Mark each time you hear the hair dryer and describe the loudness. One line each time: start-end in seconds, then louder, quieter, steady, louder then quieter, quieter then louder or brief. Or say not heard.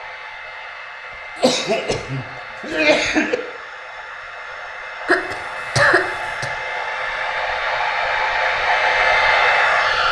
0.0-10.0 louder.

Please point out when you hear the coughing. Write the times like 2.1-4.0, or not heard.
1.4-3.4, 5.0-6.5.